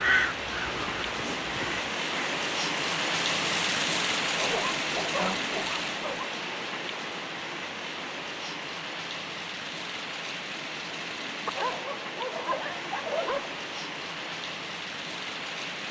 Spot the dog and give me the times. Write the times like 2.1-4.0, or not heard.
4.3-6.2, 11.4-13.5.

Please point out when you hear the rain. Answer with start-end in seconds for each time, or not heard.
0.0-15.8.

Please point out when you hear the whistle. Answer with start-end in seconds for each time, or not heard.
not heard.